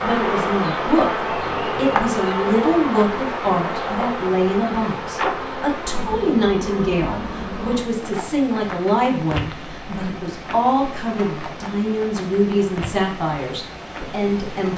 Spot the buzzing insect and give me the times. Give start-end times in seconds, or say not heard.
0.0-14.7.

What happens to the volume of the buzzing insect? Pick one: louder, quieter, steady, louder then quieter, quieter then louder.
quieter.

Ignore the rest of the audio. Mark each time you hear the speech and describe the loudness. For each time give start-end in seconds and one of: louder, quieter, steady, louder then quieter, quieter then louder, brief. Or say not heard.
0.0-14.7 steady.